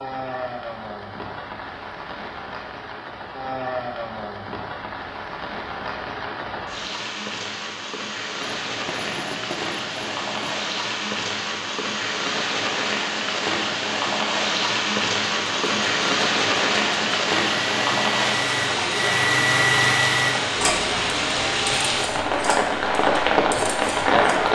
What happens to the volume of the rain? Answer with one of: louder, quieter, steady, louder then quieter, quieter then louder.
louder.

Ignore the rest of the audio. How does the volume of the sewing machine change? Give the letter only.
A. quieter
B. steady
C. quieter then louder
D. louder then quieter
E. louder
D.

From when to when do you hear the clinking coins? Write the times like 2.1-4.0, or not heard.
8.4-10.6.